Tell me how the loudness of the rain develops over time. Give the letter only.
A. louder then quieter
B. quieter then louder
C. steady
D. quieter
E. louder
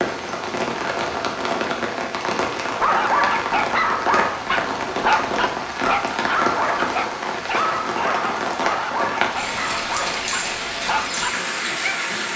C.